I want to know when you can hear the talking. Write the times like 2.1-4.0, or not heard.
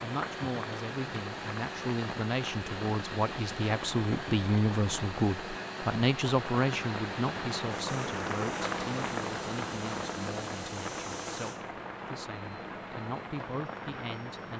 0.0-14.5.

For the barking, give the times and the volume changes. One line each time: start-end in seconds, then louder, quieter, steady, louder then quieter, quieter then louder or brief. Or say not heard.
not heard.